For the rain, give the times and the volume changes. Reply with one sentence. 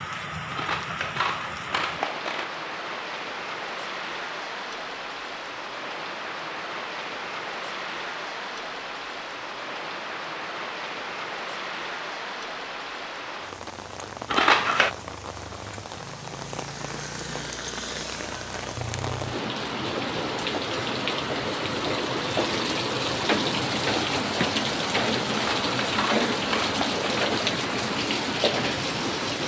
The rain can be heard from 0.0 to 29.4 s, getting louder.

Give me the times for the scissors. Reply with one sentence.
The scissors can be heard from 0.5 to 2.5 s, from 14.2 to 14.9 s and from 25.2 to 27.2 s.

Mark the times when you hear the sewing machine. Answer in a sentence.
The sewing machine can't be heard in this clip.